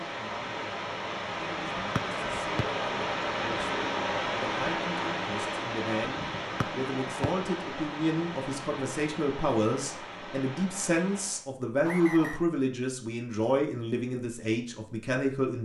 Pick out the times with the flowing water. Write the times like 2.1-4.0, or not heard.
0.0-11.4.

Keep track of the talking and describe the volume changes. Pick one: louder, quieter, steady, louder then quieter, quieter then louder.
louder.